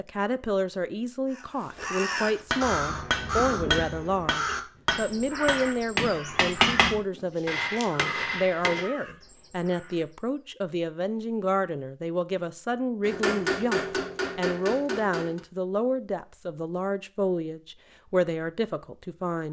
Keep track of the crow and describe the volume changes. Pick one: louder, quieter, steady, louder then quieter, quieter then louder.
quieter.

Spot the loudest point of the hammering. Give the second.
7 s.